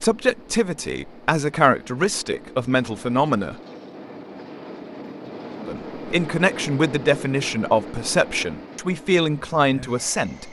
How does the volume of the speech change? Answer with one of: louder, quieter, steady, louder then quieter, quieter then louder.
steady.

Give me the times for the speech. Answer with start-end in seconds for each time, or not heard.
0.0-3.5, 5.7-10.4.